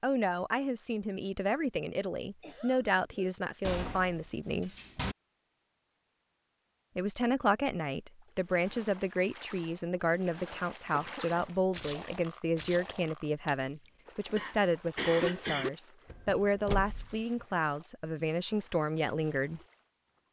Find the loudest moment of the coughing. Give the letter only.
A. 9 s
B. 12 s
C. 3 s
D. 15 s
D.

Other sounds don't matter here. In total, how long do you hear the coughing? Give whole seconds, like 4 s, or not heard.
3 s.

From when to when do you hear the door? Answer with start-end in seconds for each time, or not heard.
3.6-5.2, 16.1-17.2.